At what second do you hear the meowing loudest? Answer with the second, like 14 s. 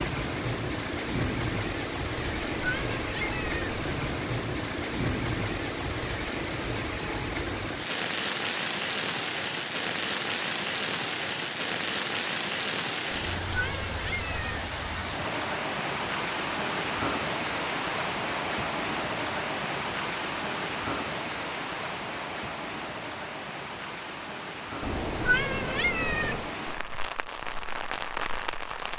25 s.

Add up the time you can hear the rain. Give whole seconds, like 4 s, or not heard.
29 s.